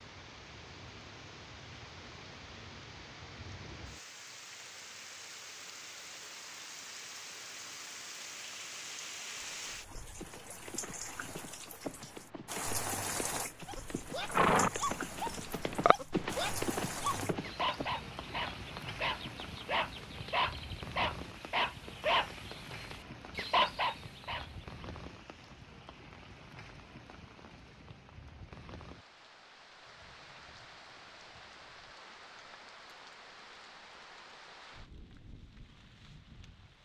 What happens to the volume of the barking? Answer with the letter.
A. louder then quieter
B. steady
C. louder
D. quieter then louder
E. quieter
C.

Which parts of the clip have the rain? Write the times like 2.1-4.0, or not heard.
0.0-36.8.